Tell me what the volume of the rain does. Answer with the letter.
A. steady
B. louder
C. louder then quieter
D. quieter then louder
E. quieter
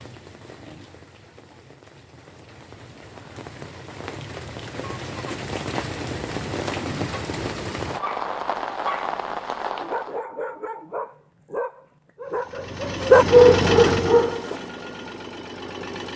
B.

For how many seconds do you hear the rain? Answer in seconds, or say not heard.
10 s.